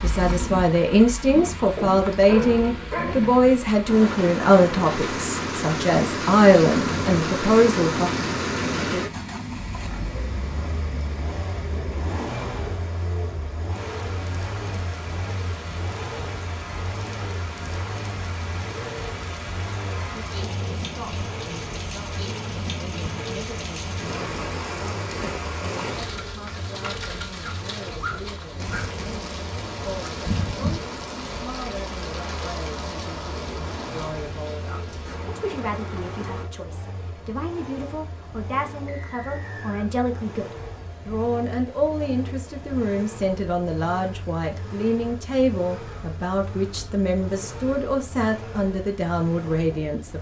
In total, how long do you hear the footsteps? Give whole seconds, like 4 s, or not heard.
not heard.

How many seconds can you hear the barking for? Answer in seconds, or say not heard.
3 s.